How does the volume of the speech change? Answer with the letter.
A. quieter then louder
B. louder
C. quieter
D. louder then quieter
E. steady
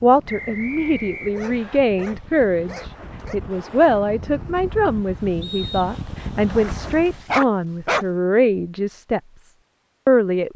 E.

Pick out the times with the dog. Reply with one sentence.
You can hear the dog from 1.3 to 3.4 s and from 6.7 to 8.1 s.